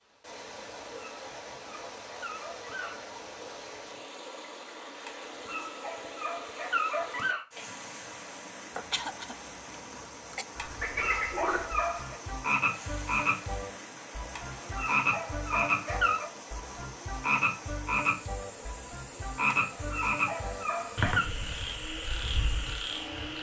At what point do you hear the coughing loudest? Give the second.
9 s.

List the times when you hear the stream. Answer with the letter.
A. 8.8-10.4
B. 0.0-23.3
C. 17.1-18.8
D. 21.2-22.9
B.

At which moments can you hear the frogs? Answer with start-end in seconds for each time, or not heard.
10.6-23.3.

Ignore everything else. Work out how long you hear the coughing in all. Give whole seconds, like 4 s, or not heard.
2 s.